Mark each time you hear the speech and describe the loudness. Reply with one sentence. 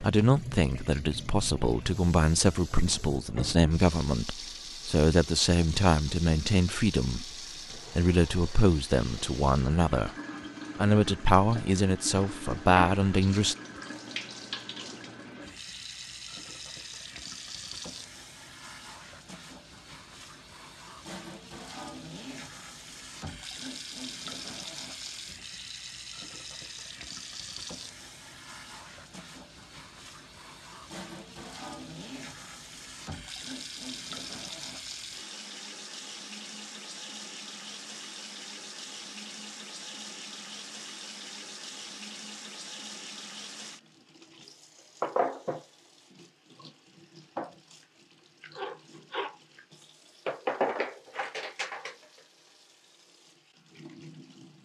You can hear the speech from 0.0 to 10.1 s, at a steady volume; and briefly from 10.8 to 13.6 s.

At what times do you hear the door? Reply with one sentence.
The door can't be heard in this clip.